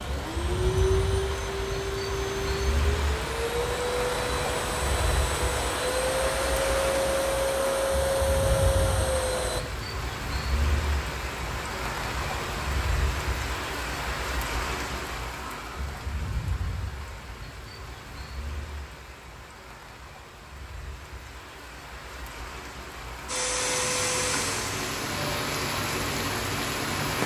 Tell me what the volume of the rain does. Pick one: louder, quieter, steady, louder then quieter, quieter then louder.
quieter then louder.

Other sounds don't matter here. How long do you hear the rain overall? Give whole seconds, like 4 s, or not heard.
27 s.